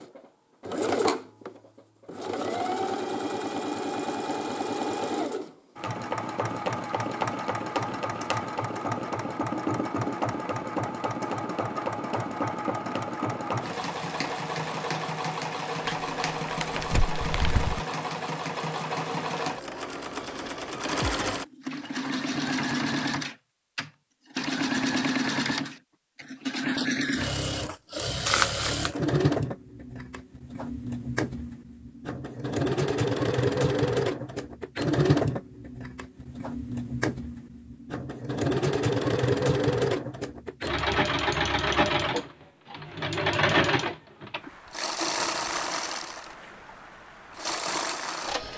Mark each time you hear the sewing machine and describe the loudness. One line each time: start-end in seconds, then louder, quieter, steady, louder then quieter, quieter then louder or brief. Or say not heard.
0.0-48.5 steady.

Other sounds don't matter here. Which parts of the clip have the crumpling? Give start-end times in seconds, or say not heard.
15.8-17.8, 28.2-28.9.